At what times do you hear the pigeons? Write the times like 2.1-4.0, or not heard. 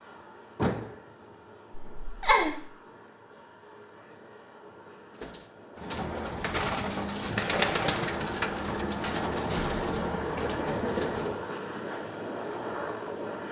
5.8-11.4.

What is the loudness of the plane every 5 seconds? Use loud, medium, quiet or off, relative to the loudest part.
quiet, loud, loud.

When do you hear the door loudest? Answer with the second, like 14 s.
1 s.